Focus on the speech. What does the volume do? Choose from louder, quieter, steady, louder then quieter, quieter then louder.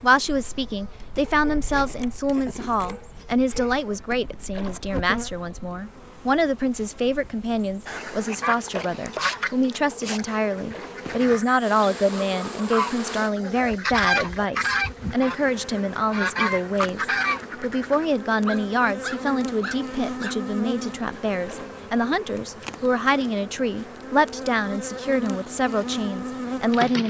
steady.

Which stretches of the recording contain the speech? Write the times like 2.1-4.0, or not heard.
0.0-27.0.